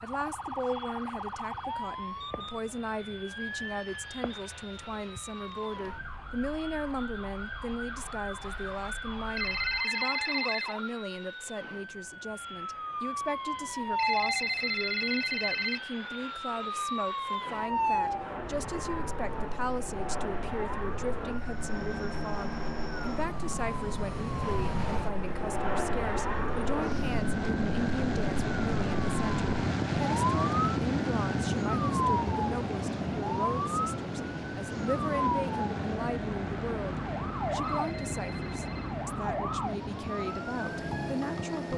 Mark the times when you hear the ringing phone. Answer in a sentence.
You can hear the ringing phone from 9.3 to 10.8 s, from 13.9 to 15.8 s and from 37.6 to 39.0 s.